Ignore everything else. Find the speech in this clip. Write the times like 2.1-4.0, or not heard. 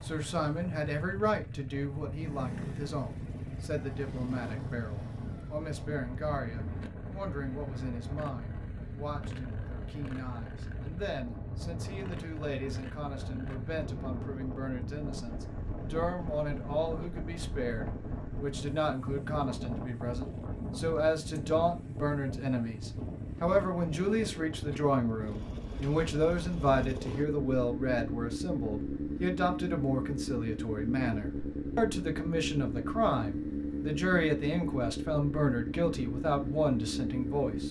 0.0-37.6.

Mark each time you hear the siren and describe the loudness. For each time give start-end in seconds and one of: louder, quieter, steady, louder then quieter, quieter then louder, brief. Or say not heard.
not heard.